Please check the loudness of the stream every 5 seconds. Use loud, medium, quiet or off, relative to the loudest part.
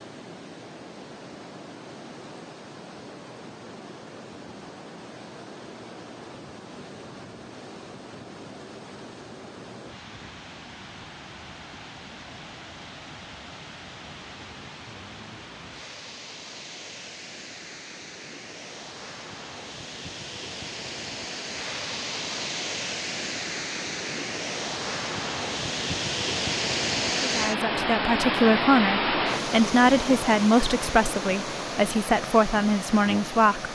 quiet, quiet, quiet, quiet, medium, loud, medium.